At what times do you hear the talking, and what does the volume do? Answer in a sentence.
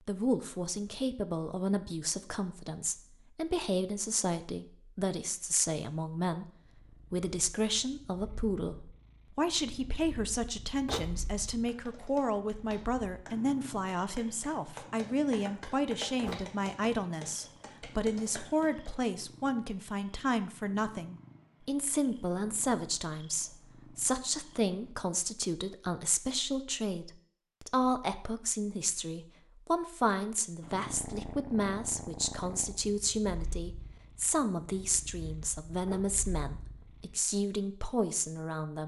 You can hear the talking from 0.1 to 6.5 s, at a steady volume; and from 7.1 to 38.8 s, at a steady volume.